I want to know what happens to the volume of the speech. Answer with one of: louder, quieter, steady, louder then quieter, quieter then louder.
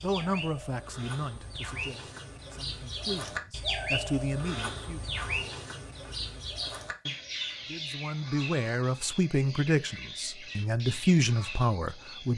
quieter then louder.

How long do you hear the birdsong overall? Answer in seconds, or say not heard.
12 s.